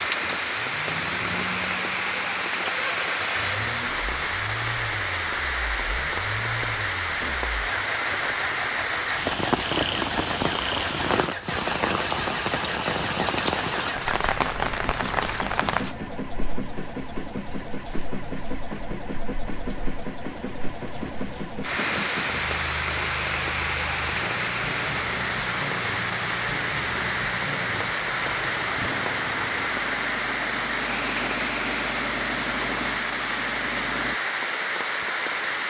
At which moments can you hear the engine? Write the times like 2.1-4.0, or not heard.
0.0-34.2.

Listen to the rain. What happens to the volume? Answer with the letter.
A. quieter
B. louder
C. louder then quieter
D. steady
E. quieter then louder
E.